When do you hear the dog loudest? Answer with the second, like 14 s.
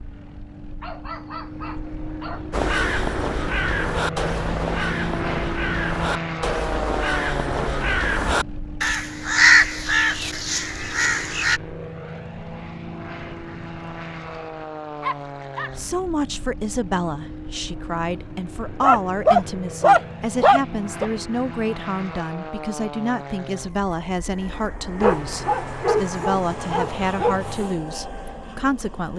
20 s.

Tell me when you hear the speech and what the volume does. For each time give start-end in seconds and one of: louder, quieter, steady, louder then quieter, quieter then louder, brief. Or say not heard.
15.8-29.1 steady.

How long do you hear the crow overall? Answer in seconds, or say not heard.
9 s.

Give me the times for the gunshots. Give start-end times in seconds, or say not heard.
not heard.